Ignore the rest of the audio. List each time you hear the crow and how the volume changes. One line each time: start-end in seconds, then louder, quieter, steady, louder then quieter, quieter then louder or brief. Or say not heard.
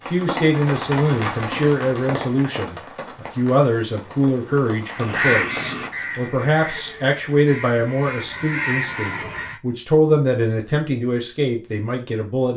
4.9-9.6 quieter then louder.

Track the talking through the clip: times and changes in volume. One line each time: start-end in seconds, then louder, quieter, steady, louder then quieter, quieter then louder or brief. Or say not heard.
0.1-12.5 steady.